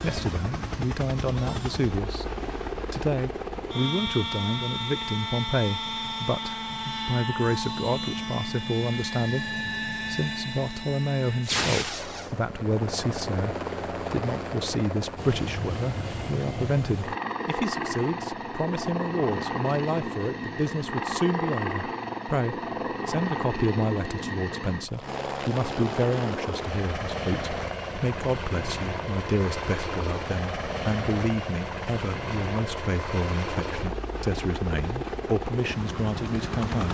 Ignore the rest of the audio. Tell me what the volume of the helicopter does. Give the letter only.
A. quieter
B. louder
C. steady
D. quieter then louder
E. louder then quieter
C.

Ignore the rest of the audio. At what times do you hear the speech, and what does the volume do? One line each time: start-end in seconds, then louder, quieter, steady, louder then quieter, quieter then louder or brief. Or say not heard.
0.0-36.8 steady.